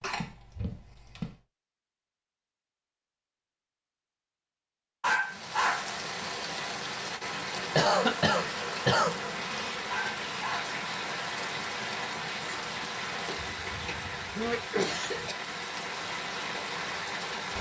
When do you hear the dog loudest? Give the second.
5 s.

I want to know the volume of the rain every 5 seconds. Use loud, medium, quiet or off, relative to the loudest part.
off, loud, loud, loud.